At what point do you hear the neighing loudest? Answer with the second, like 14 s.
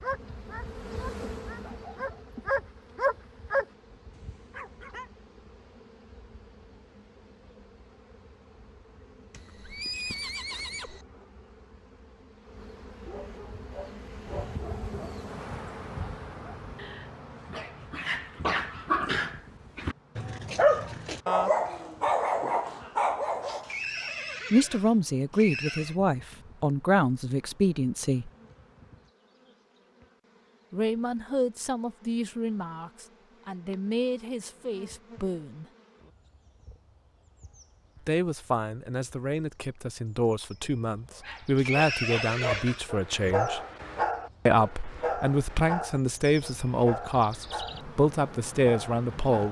42 s.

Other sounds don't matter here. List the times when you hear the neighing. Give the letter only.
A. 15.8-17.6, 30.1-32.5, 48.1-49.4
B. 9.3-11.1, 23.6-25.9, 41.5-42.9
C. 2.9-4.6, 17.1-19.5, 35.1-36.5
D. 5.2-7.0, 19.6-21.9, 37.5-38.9
B.